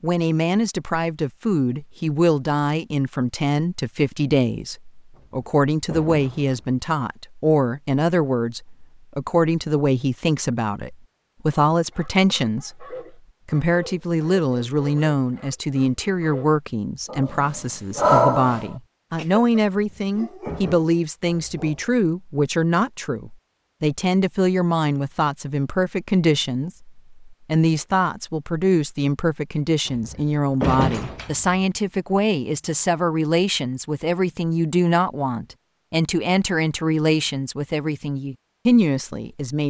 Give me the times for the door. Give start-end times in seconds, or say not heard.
5.2-6.8, 19.7-20.8, 29.9-31.6.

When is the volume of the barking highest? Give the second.
18 s.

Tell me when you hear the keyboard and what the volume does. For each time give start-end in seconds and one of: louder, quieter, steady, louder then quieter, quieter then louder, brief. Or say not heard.
not heard.